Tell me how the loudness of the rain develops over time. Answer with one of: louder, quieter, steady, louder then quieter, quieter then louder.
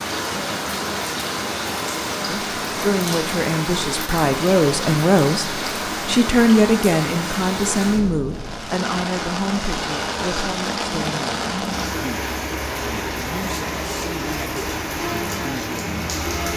steady.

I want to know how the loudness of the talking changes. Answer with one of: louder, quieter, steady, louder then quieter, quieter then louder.
quieter.